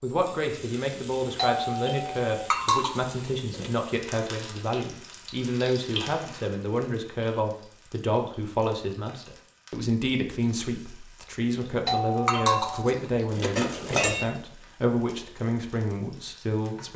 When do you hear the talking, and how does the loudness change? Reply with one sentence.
You can hear the talking from 0.0 to 16.9 s, at a steady volume.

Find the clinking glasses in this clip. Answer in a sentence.
The clinking glasses can be heard from 2.5 to 3.7 s and from 12.2 to 14.2 s.